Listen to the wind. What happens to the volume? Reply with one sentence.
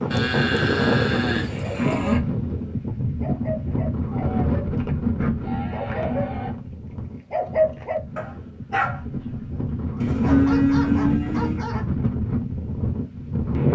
The loudness of the wind goes down, then up.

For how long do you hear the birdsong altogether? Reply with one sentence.
You can't hear the birdsong here.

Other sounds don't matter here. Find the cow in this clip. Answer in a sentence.
You can hear the cow from 0.1 to 2.2 s, from 5.4 to 6.5 s and from 10.0 to 11.6 s.